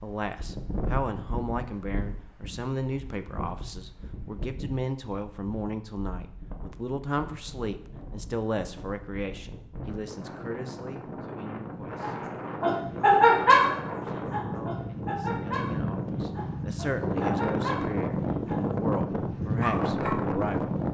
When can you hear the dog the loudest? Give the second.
13 s.